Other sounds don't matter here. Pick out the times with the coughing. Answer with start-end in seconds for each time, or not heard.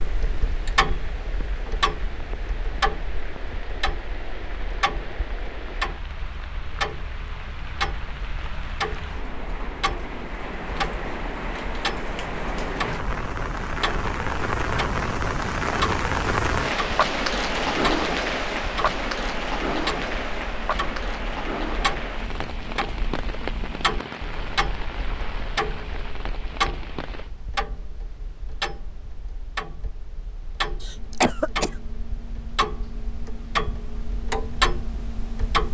30.8-31.7.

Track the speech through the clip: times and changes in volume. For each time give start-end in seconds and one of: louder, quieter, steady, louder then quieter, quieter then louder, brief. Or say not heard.
not heard.